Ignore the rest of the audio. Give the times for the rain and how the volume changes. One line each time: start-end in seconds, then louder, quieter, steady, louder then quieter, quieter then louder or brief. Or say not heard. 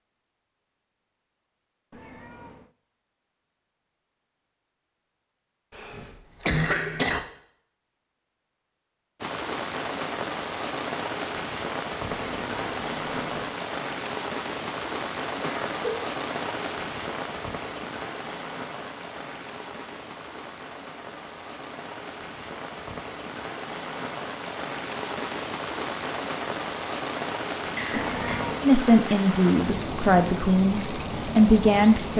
9.2-32.1 quieter then louder.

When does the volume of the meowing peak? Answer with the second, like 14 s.
28 s.